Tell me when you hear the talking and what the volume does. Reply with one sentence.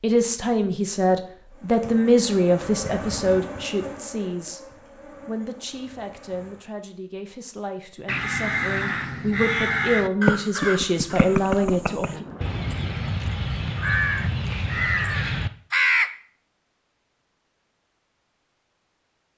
You can hear the talking from 0.0 to 12.2 s, getting quieter then louder.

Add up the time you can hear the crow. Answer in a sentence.
The crow can be heard for 8 seconds in total.